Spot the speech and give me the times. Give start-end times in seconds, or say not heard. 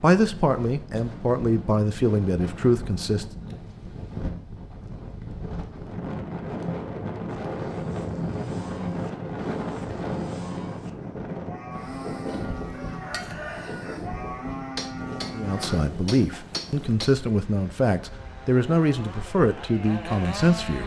0.0-3.2, 15.3-20.8.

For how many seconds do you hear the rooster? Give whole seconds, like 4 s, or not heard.
2 s.